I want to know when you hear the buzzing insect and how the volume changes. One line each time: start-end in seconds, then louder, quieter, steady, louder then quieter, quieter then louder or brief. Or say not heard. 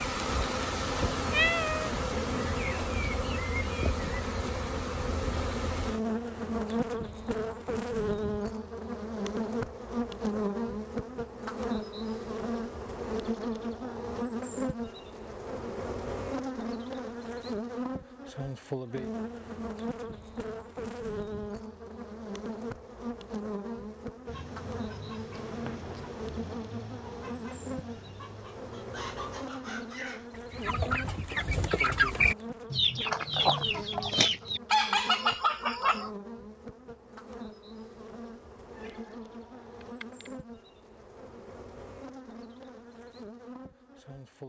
0.0-44.4 quieter.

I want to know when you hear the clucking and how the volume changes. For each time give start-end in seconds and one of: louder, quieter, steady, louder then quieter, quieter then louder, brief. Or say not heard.
24.2-36.1 louder.